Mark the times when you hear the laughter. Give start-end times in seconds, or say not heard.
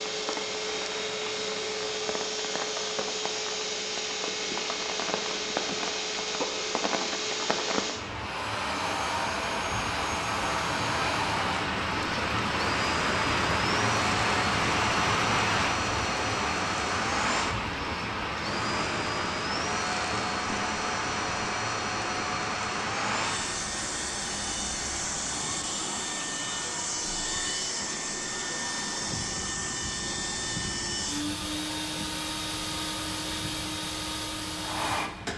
not heard.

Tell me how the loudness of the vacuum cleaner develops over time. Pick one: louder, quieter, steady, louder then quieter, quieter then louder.
steady.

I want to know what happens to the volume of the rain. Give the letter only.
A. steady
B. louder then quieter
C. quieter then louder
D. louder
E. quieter
B.